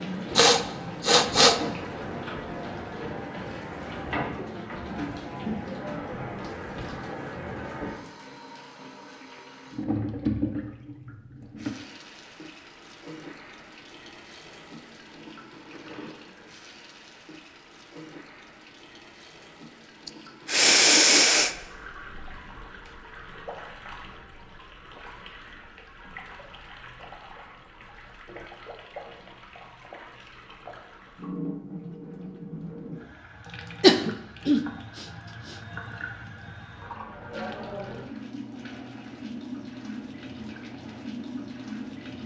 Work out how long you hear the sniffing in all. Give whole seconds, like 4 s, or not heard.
4 s.